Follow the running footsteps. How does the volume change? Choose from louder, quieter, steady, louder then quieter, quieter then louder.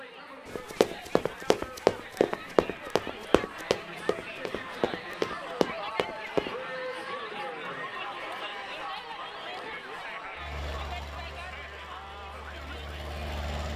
quieter then louder.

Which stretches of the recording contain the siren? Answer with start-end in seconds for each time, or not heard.
not heard.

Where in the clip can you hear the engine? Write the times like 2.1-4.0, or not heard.
10.3-13.7.